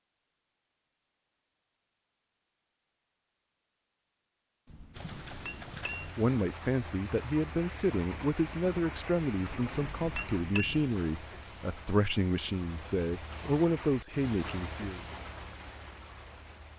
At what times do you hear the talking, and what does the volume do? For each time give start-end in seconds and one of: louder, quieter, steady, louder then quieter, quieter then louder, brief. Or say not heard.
6.2-15.1 steady.